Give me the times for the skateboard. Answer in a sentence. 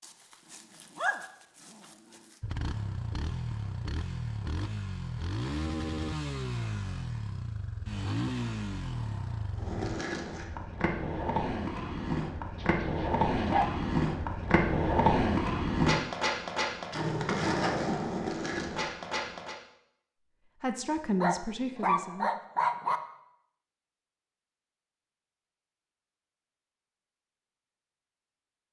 You can hear the skateboard from 9.6 to 19.6 s.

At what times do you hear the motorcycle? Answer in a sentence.
You can hear the motorcycle from 2.4 to 10.0 s.